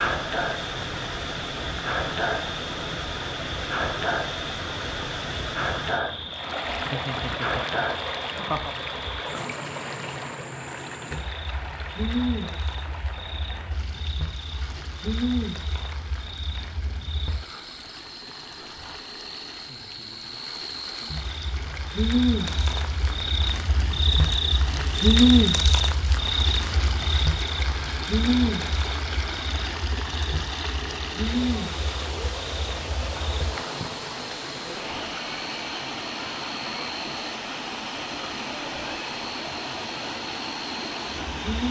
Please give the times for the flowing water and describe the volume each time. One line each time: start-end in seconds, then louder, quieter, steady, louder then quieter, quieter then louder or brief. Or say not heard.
0.0-41.6 quieter then louder.